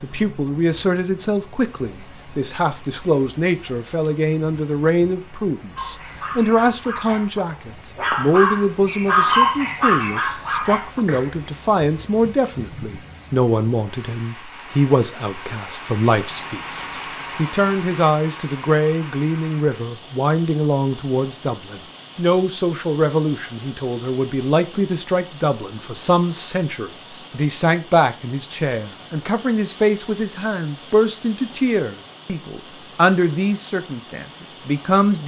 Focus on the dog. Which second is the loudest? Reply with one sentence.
The volume of the dog peaks at 9 seconds.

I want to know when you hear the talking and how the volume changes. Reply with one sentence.
The talking can be heard from 0.0 to 35.2 s, at a steady volume.